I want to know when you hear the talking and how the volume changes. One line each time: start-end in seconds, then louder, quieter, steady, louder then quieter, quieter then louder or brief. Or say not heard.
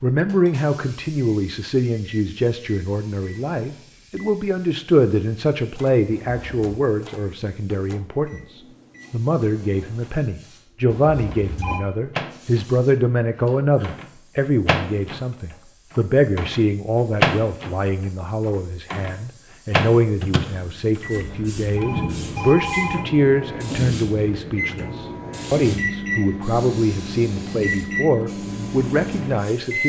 0.0-29.8 steady.